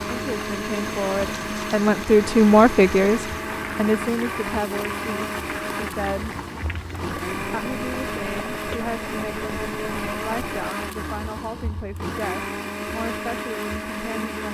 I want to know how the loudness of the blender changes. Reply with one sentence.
The loudness of the blender stays about the same.